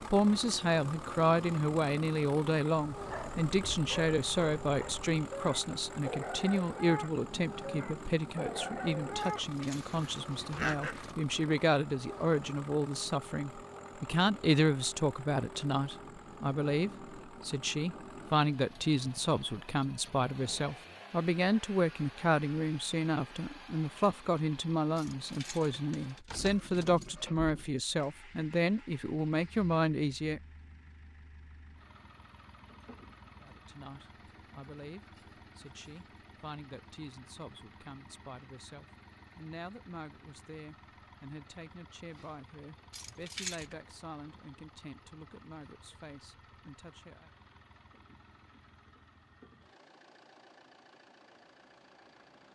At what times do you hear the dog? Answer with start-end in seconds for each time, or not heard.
2.9-11.1.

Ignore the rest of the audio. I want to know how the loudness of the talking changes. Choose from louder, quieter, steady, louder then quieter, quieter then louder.
quieter.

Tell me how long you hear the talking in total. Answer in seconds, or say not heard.
44 s.